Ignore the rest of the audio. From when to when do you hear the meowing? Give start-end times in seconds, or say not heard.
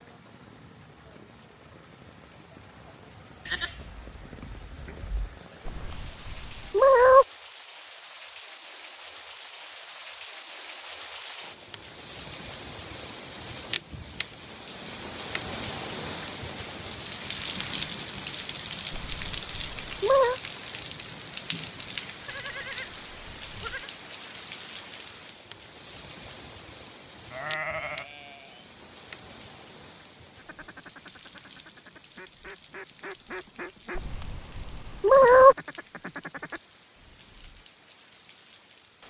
5.7-7.2, 18.9-20.4, 34.0-35.5.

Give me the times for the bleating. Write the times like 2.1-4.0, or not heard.
3.5-5.3, 22.2-23.9, 27.3-28.6.